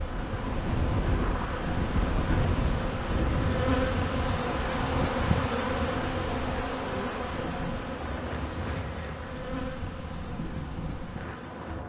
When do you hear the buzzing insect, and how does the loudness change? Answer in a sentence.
The buzzing insect can be heard from 0.0 to 11.8 s, getting louder then quieter.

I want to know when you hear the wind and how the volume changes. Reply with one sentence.
The wind can be heard from 0.0 to 11.8 s, getting quieter.